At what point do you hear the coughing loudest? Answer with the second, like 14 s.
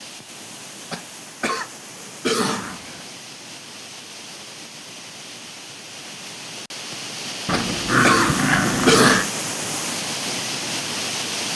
9 s.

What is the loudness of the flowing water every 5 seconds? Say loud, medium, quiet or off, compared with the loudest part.
quiet, loud, loud.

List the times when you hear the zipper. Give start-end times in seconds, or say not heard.
not heard.